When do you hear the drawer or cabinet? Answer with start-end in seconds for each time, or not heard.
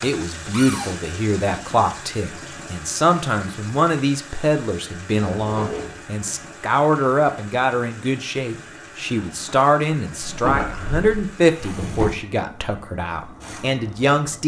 0.5-0.9, 5.2-6.0, 10.2-12.1.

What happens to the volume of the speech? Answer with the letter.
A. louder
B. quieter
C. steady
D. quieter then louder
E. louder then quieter
C.